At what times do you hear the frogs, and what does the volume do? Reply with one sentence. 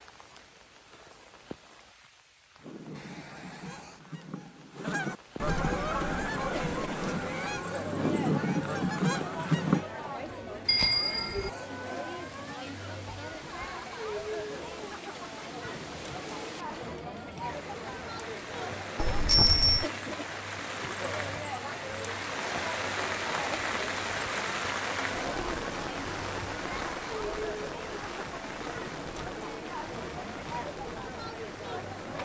You can't hear the frogs here.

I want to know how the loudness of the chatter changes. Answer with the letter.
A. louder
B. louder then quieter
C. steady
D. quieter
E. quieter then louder
C.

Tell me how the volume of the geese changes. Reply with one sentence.
The loudness of the geese goes up.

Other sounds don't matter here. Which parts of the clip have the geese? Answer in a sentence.
You can hear the geese from 2.6 to 9.8 s.